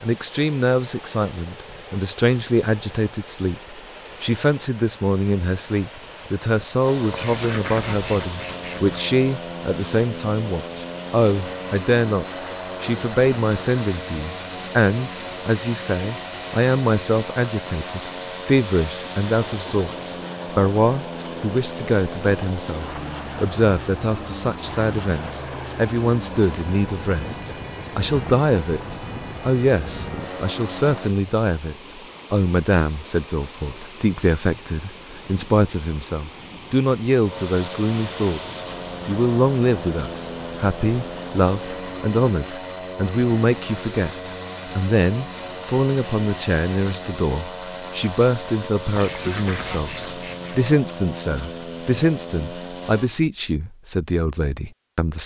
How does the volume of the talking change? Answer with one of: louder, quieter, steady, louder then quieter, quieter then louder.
steady.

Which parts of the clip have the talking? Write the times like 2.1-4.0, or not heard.
0.0-55.2.